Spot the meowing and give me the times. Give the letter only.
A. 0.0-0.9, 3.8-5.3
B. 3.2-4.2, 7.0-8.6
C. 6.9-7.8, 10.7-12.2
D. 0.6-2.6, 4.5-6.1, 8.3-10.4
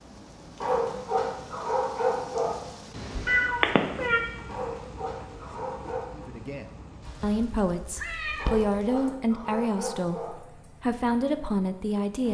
B.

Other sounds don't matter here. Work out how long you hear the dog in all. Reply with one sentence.
You can hear the dog for 6 seconds altogether.